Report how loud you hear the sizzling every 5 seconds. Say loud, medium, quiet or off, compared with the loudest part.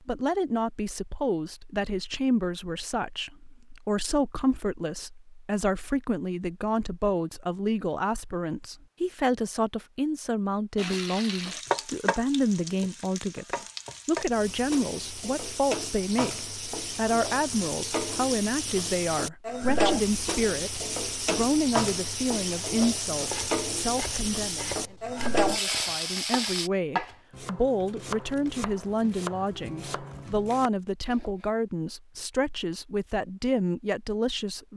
off, off, medium, loud, loud, loud, off.